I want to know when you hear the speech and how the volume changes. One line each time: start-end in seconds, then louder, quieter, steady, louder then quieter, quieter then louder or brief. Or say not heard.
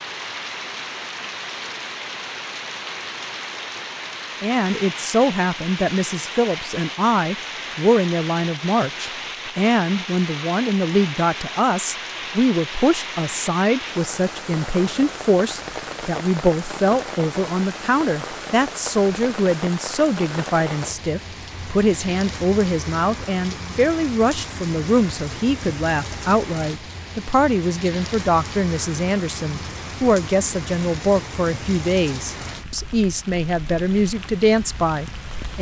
4.4-35.5 steady.